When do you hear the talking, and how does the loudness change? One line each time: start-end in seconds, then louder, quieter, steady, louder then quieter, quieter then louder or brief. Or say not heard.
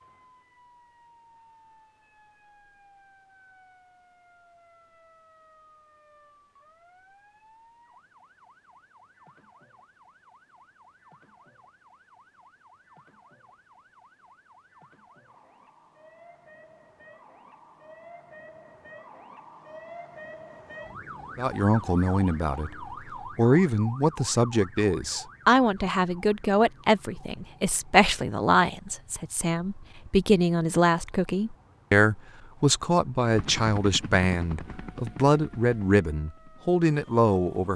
21.4-37.7 steady.